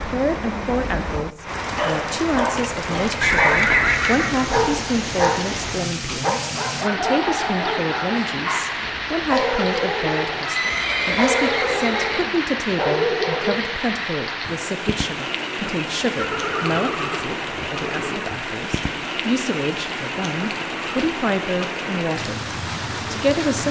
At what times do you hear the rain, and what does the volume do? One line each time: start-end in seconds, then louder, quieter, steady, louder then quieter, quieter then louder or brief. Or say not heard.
0.0-23.6 steady.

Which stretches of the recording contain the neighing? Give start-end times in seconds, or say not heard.
3.2-5.0, 10.4-12.3, 16.1-18.2.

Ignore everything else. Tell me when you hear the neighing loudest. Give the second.
4 s.